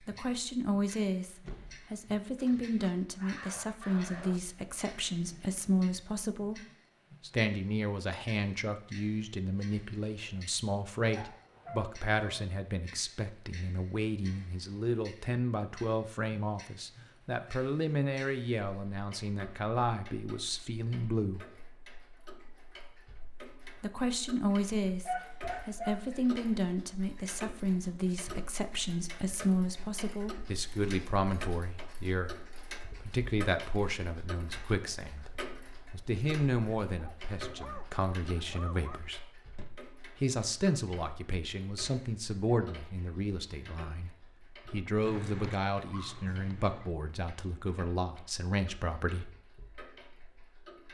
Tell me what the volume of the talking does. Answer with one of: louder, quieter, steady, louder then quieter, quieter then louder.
steady.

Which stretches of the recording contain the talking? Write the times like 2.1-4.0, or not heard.
0.1-21.4, 23.8-35.3, 35.9-39.2, 40.1-49.3.